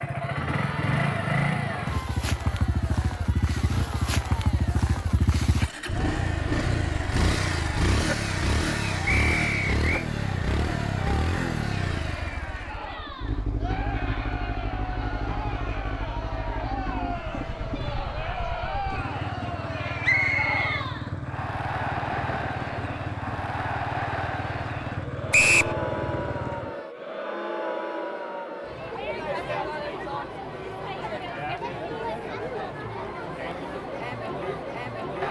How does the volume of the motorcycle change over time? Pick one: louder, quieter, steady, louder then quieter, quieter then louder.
quieter.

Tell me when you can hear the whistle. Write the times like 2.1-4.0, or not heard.
9.1-10.1, 20.0-20.9, 25.3-25.8.